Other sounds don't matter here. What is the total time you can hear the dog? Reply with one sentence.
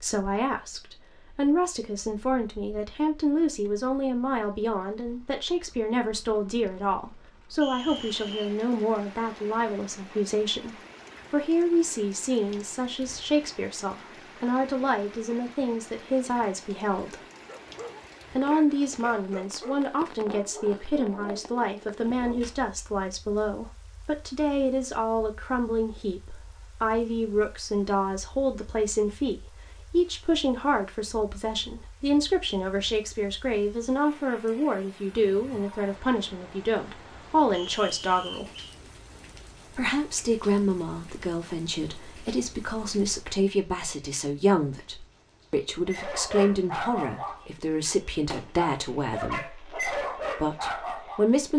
The dog can be heard for 11 seconds in total.